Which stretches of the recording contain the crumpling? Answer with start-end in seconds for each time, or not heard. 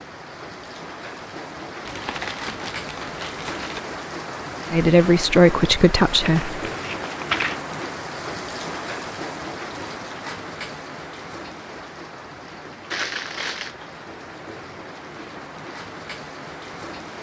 1.9-3.8, 6.2-7.6, 12.9-13.8.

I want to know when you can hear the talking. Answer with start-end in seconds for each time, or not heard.
4.7-6.5.